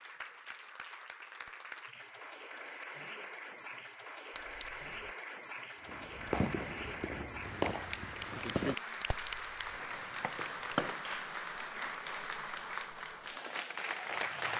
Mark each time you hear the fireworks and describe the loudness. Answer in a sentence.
You can hear the fireworks from 5.8 to 11.2 s, getting quieter then louder.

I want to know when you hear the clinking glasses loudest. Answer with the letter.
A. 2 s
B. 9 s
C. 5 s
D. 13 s
B.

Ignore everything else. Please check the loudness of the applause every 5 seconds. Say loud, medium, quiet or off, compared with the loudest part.
medium, loud, loud.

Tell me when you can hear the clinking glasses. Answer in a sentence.
The clinking glasses can be heard from 4.3 to 5.0 s and from 9.0 to 9.7 s.